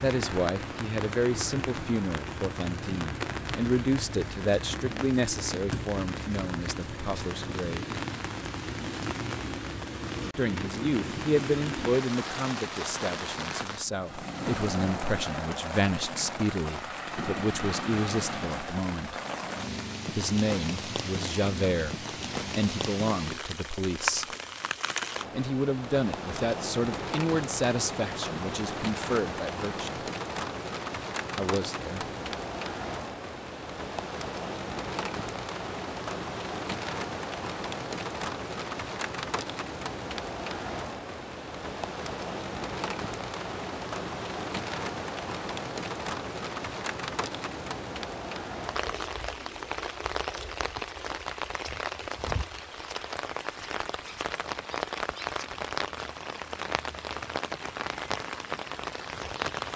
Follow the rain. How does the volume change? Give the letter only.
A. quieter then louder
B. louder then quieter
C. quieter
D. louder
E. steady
E.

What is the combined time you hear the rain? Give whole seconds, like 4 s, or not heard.
60 s.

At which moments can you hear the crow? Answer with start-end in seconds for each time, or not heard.
not heard.